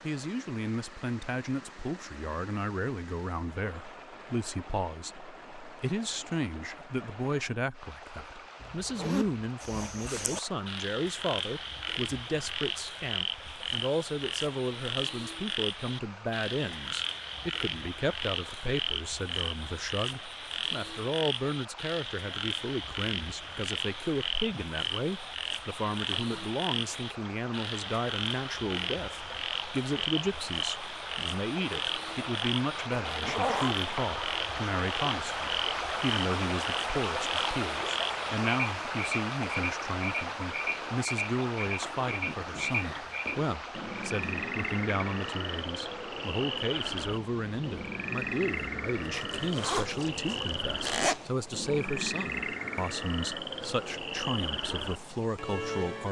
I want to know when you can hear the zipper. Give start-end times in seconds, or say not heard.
8.6-9.4, 32.9-33.9, 49.1-51.2.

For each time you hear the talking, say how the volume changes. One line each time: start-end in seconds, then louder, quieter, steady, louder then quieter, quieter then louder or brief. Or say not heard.
0.0-56.0 steady.